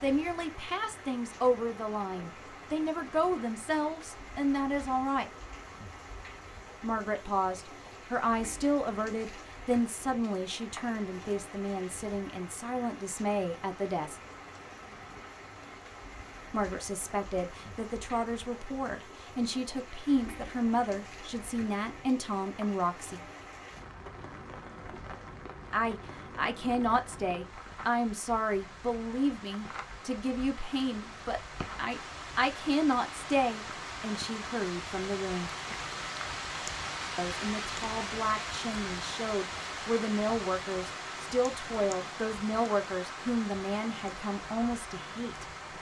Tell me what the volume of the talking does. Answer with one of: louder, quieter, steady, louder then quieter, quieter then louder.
steady.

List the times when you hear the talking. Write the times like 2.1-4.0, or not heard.
0.0-5.3, 6.8-14.2, 16.5-23.2, 25.7-35.5, 37.1-45.5.